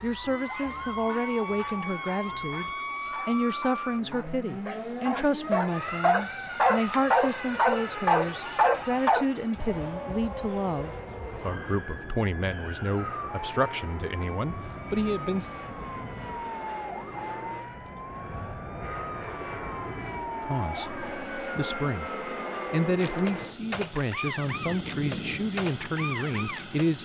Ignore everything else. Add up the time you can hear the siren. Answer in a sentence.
You can hear the siren for 27 seconds altogether.